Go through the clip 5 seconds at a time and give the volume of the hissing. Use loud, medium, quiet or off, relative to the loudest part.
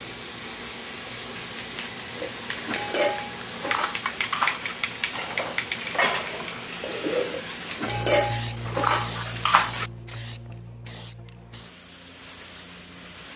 loud, loud, medium.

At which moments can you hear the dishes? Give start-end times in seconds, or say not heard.
2.1-9.9.